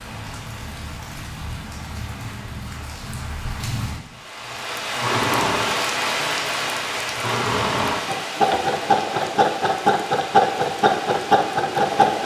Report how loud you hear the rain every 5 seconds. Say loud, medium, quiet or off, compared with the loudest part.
medium, loud, medium.